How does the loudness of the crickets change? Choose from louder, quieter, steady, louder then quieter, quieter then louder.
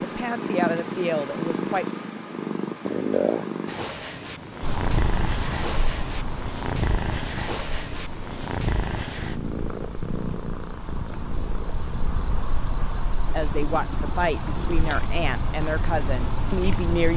quieter then louder.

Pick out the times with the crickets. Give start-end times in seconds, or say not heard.
4.6-17.1.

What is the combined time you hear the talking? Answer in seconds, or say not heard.
6 s.